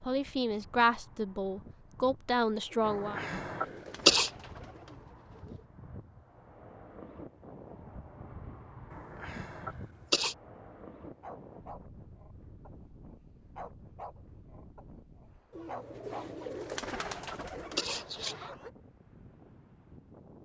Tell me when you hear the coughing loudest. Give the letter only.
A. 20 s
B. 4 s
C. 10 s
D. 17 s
B.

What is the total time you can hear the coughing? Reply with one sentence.
The coughing can be heard for 5 seconds in total.